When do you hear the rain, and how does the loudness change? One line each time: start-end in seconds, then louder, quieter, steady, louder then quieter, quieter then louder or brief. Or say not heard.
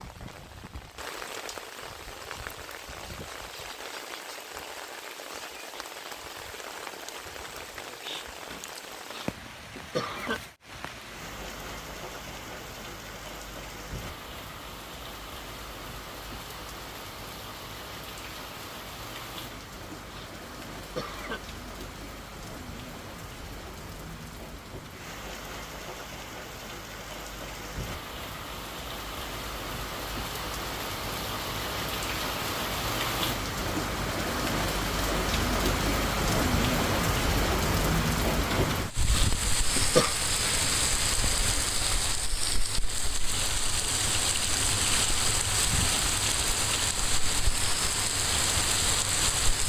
0.0-49.6 louder.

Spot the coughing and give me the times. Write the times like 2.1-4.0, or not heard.
8.5-10.4, 19.5-21.4, 38.5-40.1.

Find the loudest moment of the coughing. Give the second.
40 s.